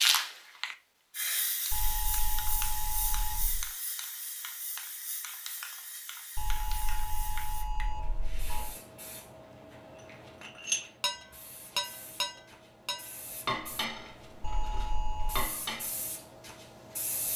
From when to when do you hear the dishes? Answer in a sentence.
You can hear the dishes from 10.4 to 16.1 s.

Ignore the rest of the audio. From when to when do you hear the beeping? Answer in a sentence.
You can hear the beeping from 1.7 to 3.7 s, from 6.3 to 8.8 s and from 14.4 to 15.5 s.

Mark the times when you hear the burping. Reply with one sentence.
You can't hear the burping here.